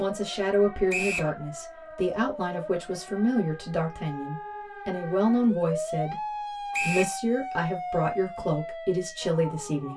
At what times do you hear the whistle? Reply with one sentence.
You can hear the whistle from 0.9 to 1.3 s and from 6.7 to 7.2 s.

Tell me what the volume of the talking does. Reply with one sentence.
The loudness of the talking stays about the same.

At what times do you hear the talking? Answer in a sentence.
You can hear the talking from 0.0 to 6.2 s and from 6.8 to 9.9 s.